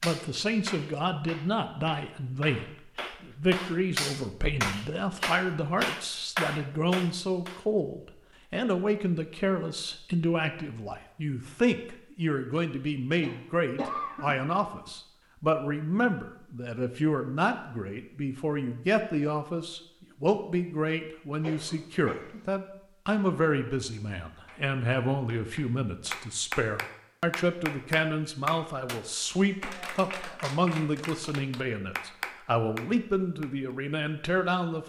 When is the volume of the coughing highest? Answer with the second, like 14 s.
14 s.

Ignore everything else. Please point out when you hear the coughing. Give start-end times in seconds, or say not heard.
13.2-14.9, 21.4-22.5.